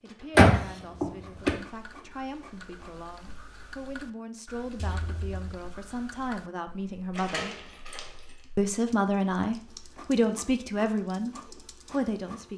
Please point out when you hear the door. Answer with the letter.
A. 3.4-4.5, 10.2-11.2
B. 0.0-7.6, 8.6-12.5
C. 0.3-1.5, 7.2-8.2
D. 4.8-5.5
C.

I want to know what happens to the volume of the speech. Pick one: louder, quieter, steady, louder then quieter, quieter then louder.
louder.